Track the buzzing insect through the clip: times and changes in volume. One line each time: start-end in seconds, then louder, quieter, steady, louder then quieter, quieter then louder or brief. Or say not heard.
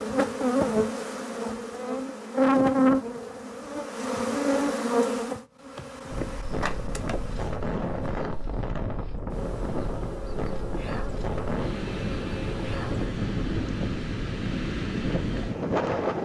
0.0-16.1 quieter.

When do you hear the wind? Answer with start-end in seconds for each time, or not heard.
6.1-16.1.